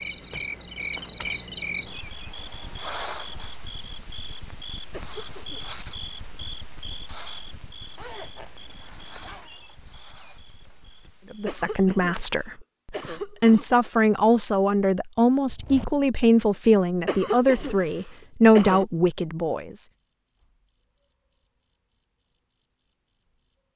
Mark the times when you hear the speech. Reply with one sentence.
You can hear the speech from 11.3 to 19.9 s.